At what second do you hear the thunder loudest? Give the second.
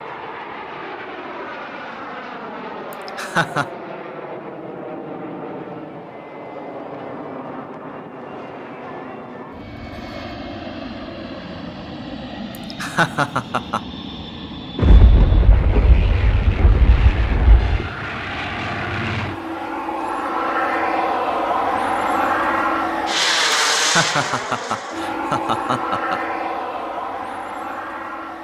15 s.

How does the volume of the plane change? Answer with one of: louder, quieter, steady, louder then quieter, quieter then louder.
louder.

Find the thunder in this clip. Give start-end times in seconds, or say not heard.
14.8-17.9.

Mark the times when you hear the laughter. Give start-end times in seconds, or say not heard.
2.9-3.7, 12.7-13.8, 23.8-26.2.